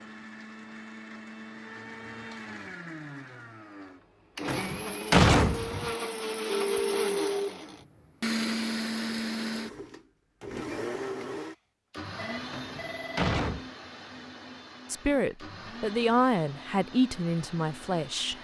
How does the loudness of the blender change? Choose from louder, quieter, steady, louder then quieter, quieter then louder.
louder then quieter.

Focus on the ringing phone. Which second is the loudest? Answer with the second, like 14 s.
7 s.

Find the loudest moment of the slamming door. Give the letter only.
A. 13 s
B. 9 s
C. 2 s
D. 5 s
D.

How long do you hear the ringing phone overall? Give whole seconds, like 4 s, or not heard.
2 s.